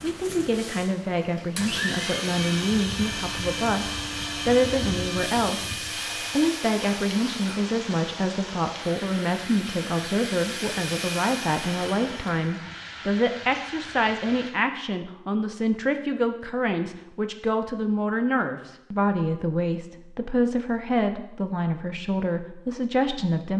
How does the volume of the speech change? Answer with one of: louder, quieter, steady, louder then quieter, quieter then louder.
steady.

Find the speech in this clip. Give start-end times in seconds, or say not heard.
0.0-23.5.